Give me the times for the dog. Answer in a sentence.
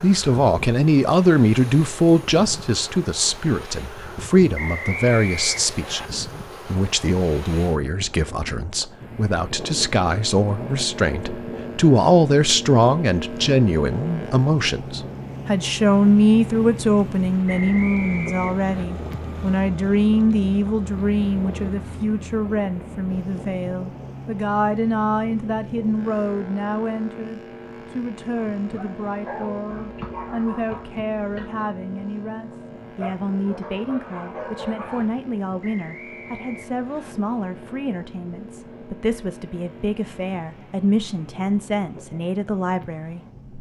You can hear the dog from 28.6 to 35.1 s.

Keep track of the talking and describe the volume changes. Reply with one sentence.
The volume of the talking goes down.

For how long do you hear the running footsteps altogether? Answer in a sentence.
You can't hear the running footsteps here.